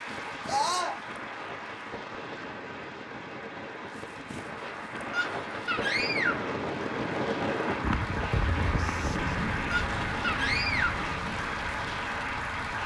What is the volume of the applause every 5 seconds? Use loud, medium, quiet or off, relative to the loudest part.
medium, loud, loud.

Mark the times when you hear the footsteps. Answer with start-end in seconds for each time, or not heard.
not heard.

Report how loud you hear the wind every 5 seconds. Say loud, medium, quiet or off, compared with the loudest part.
medium, loud, medium.